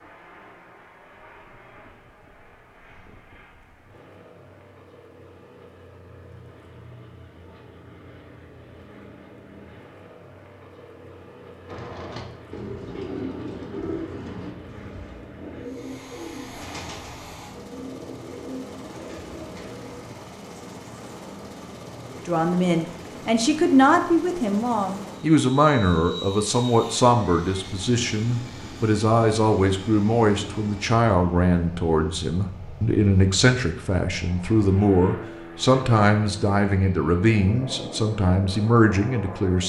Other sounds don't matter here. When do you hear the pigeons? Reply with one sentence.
You can hear the pigeons from 11.7 to 20.1 s.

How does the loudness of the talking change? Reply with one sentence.
The volume of the talking stays about the same.